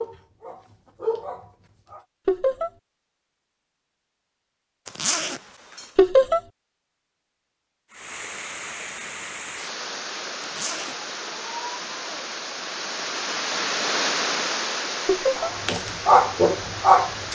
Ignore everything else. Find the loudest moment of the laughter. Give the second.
6 s.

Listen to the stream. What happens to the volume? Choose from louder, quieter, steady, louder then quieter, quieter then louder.
louder then quieter.